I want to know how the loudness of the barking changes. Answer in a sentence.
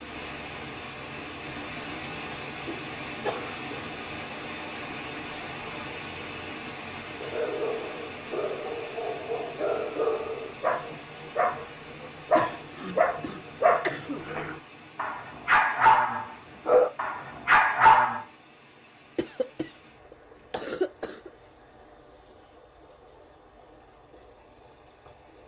The loudness of the barking goes up.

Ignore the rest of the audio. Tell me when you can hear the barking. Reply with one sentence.
The barking can be heard from 7.2 to 18.2 s.